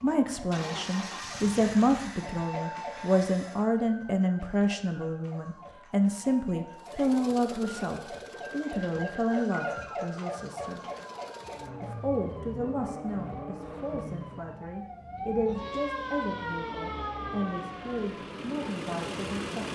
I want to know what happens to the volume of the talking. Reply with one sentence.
The loudness of the talking goes down.